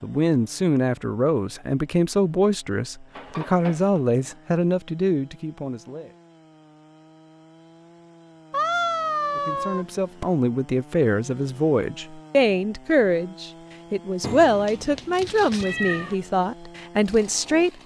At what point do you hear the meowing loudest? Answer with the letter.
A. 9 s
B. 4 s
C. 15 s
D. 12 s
A.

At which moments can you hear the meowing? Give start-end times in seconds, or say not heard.
3.1-4.0, 8.5-10.3, 14.2-16.1.